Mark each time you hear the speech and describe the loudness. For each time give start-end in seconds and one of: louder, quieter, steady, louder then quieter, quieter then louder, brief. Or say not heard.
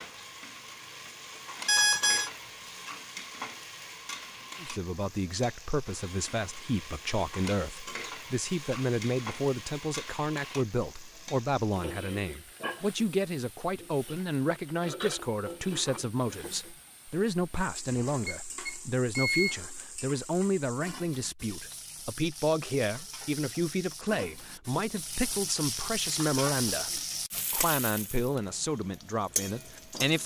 4.6-30.2 steady.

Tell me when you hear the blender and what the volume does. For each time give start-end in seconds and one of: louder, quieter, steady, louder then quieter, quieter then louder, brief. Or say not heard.
not heard.